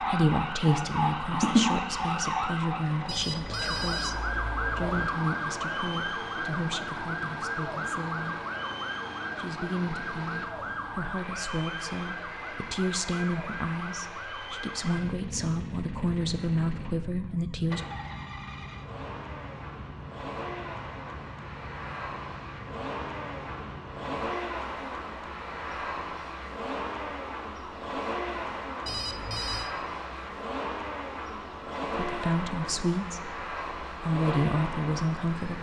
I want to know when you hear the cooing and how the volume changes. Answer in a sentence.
The cooing can't be heard in this clip.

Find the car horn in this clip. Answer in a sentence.
The car horn can't be heard in this clip.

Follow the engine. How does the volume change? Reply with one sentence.
The loudness of the engine goes up.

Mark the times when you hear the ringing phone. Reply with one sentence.
You can hear the ringing phone from 3.0 to 5.0 s and from 28.9 to 29.7 s.